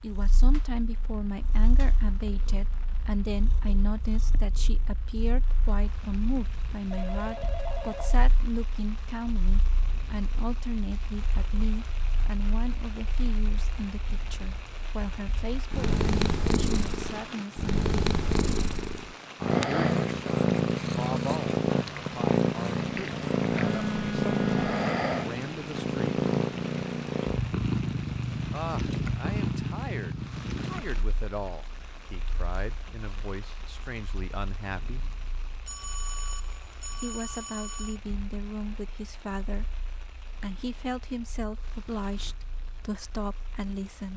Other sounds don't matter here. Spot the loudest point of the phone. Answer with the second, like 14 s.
24 s.